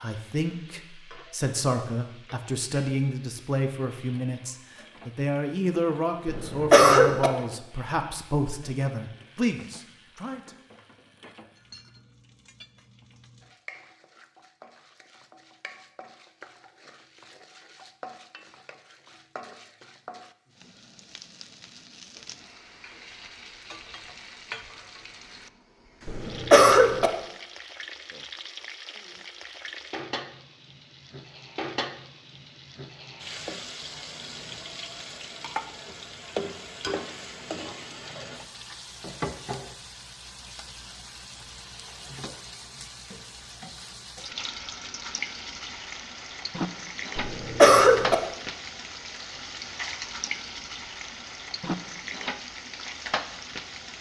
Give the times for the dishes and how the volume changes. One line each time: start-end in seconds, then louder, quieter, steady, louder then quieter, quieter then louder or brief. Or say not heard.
not heard.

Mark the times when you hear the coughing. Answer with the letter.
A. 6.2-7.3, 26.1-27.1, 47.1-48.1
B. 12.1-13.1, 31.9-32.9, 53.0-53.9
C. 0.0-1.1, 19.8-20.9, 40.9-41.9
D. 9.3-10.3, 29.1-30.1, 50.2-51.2
A.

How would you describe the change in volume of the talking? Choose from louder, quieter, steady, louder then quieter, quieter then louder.
steady.